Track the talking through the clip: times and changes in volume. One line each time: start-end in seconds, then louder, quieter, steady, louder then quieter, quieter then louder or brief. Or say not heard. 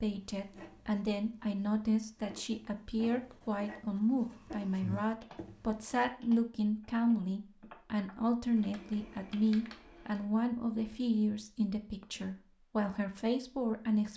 0.0-14.1 steady.